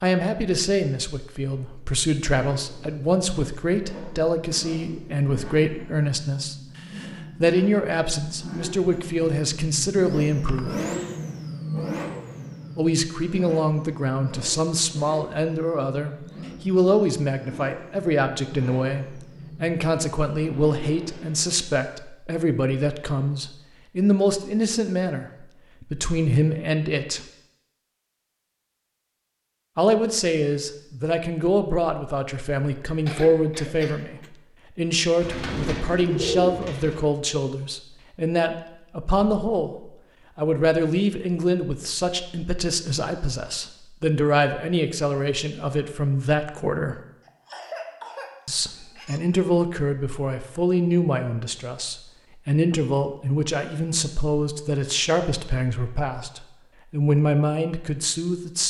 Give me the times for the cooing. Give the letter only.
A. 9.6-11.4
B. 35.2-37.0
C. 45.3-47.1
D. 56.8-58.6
B.